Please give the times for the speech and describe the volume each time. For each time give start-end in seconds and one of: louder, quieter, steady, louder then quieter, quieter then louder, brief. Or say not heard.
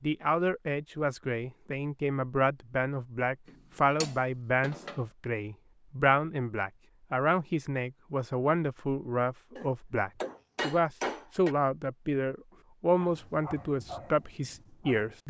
0.0-15.2 steady.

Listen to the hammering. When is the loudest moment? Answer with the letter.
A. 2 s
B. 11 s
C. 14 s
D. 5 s
B.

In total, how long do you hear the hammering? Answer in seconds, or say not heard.
3 s.